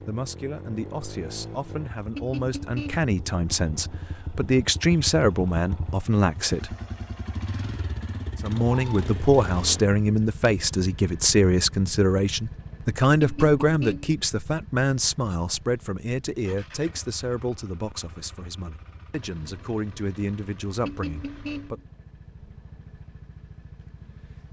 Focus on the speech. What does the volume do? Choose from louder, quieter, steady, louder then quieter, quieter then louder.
louder then quieter.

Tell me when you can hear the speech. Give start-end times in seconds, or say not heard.
0.0-6.8, 8.4-21.8.